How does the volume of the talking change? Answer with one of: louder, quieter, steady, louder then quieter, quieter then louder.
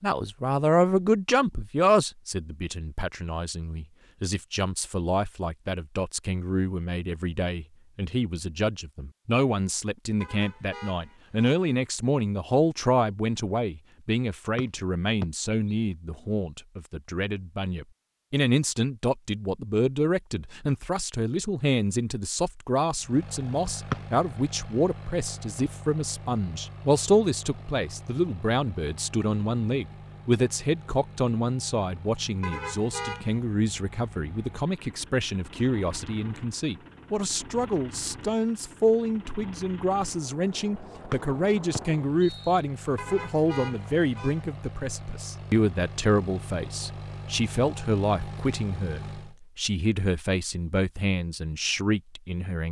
steady.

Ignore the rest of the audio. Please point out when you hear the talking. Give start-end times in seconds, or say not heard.
0.0-52.6.